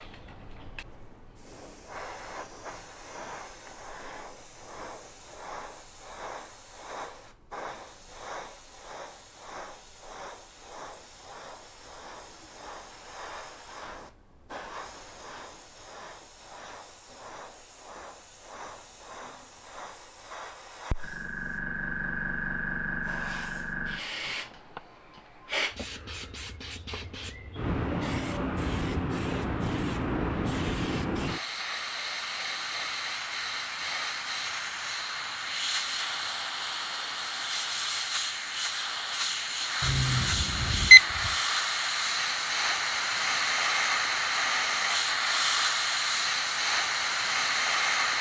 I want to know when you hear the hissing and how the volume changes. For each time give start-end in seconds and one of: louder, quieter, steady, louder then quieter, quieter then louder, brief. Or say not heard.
0.0-48.1 louder.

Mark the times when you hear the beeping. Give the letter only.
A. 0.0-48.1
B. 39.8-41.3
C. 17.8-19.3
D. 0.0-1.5
B.